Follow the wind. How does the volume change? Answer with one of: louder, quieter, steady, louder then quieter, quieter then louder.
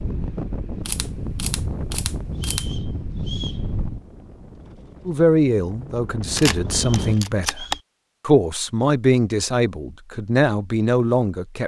quieter then louder.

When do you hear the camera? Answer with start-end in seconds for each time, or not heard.
0.8-2.6, 6.3-7.8.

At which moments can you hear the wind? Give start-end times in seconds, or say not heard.
0.0-7.2.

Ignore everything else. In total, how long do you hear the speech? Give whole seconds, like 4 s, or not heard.
6 s.